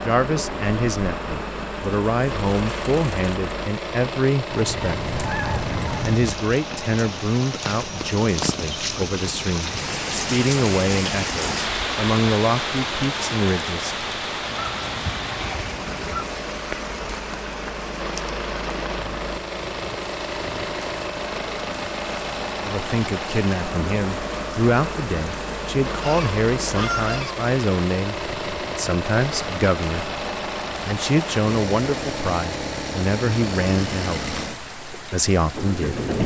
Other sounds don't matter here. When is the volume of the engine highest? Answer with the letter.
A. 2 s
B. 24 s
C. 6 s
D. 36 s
D.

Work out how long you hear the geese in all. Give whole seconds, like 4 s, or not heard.
5 s.